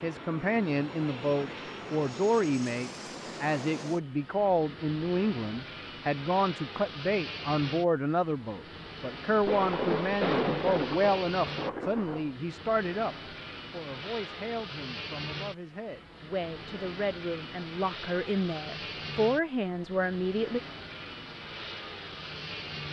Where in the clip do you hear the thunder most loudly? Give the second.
10 s.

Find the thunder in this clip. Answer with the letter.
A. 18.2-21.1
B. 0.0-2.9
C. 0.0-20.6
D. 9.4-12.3
D.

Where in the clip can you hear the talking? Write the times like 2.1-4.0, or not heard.
0.0-20.6.